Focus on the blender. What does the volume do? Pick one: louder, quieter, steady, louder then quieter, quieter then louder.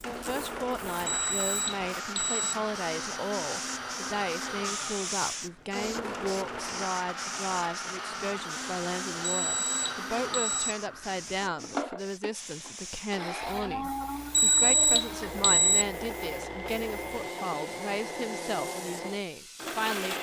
steady.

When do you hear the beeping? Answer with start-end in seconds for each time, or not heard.
1.1-2.5, 9.2-10.8, 14.3-15.8.